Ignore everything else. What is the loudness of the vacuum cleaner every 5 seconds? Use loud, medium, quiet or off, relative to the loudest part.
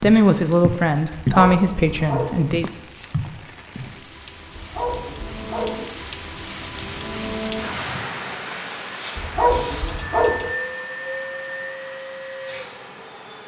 off, medium, loud.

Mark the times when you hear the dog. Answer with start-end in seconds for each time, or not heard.
1.1-2.5, 4.5-5.9, 9.2-10.5.